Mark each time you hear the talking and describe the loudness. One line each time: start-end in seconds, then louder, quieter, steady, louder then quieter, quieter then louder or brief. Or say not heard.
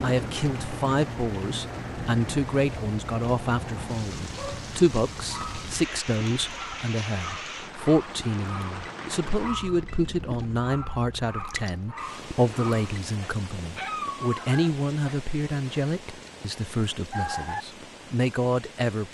0.0-19.1 steady.